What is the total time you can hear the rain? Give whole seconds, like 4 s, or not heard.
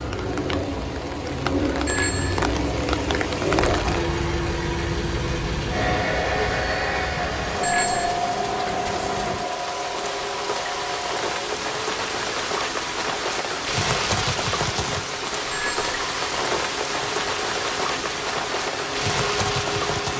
20 s.